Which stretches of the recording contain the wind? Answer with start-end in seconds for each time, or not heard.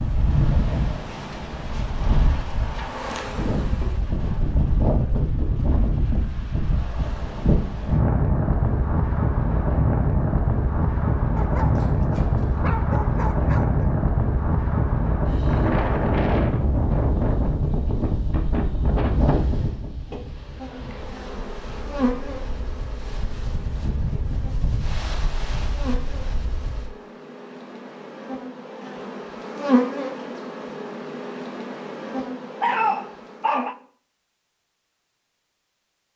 0.0-26.9.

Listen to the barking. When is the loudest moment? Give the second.
33 s.